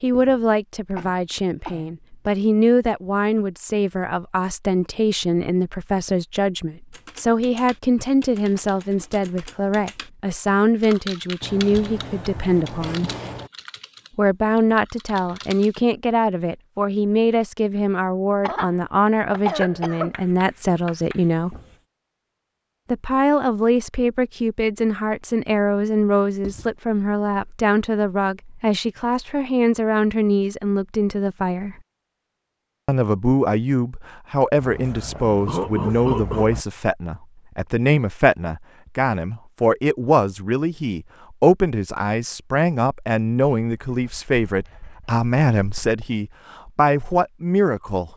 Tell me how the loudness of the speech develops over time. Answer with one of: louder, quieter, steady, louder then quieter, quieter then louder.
steady.